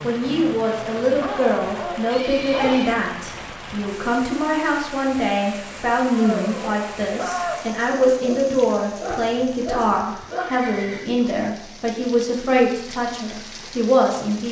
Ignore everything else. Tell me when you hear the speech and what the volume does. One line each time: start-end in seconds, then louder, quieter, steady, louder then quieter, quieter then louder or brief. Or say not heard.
0.0-14.4 steady.